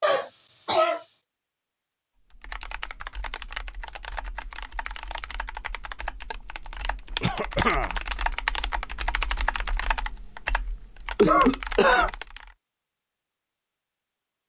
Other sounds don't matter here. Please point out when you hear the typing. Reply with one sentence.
You can hear the typing from 2.3 to 12.6 s.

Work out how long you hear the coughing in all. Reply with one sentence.
The coughing can be heard for 3 seconds in total.